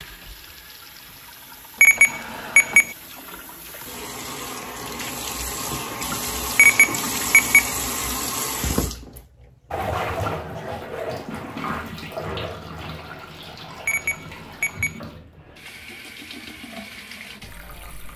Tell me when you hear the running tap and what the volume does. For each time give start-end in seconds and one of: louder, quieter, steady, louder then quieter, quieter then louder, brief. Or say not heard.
0.0-18.1 louder then quieter.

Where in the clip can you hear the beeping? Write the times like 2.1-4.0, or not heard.
1.8-3.0, 6.5-7.7, 13.8-15.0.